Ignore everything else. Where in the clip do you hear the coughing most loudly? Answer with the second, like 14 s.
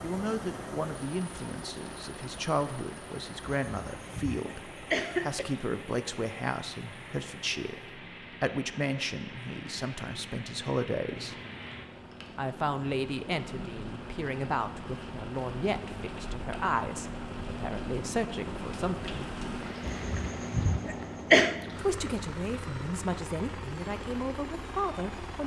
21 s.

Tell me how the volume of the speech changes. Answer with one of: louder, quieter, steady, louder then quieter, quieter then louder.
steady.